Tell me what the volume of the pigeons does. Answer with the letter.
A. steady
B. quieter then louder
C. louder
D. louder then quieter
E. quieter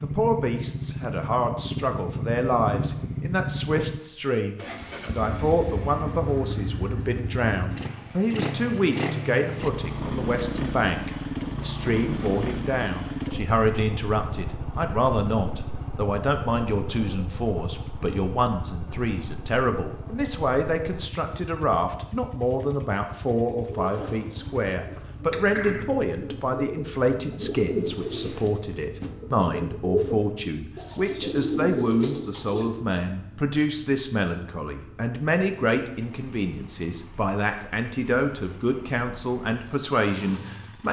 C.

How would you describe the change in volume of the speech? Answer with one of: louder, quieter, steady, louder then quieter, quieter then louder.
steady.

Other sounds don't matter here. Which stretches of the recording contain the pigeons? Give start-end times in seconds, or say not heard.
23.2-32.7.